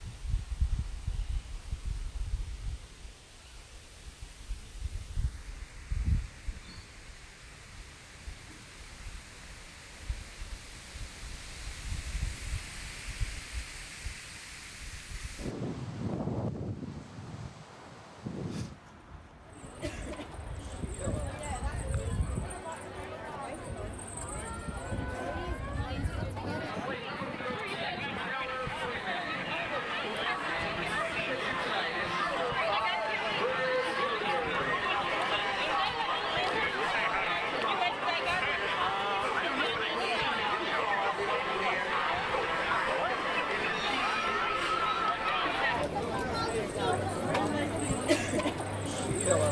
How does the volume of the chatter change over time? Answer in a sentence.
The volume of the chatter goes up.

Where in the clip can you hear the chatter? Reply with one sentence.
You can hear the chatter from 19.4 to 49.4 s.